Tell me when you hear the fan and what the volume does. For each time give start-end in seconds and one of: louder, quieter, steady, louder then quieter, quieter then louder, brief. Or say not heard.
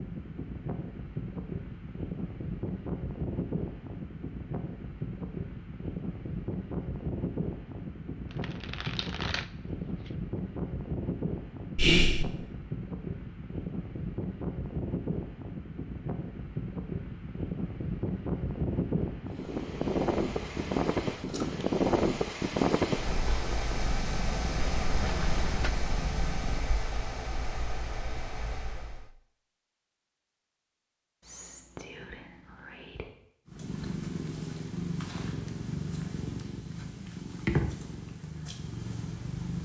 0.0-29.1 louder then quieter.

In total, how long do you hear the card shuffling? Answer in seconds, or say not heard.
3 s.